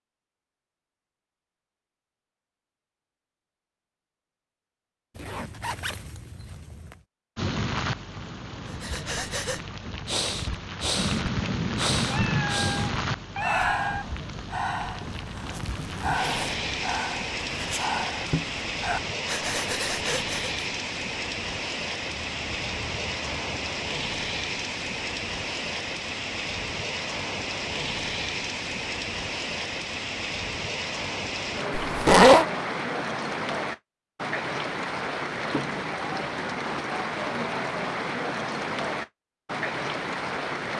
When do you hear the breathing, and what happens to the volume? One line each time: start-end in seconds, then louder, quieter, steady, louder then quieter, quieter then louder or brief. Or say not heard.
8.7-20.6 steady.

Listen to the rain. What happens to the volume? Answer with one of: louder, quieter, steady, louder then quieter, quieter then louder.
steady.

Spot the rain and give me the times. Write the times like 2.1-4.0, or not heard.
7.3-40.7.